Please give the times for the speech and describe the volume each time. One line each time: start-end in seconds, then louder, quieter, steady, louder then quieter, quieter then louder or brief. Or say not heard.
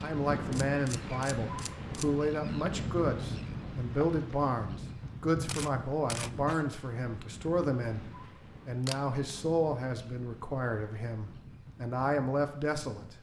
0.0-13.1 steady.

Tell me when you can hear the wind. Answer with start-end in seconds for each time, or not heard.
0.0-13.1.